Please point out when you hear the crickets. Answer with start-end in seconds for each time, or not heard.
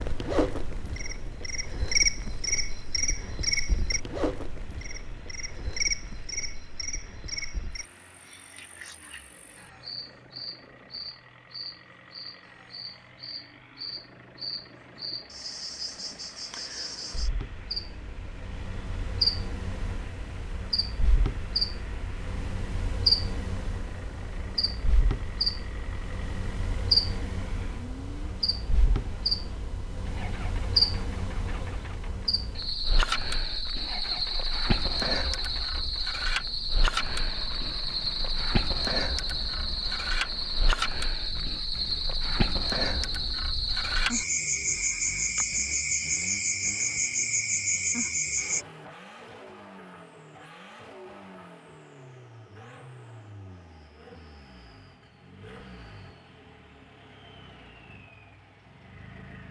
0.0-48.6.